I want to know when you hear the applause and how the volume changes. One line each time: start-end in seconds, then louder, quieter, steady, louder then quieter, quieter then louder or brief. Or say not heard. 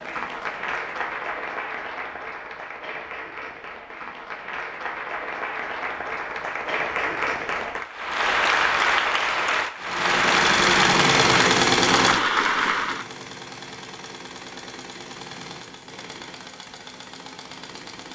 0.0-13.1 louder.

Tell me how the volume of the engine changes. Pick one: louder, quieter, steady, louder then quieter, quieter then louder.
quieter.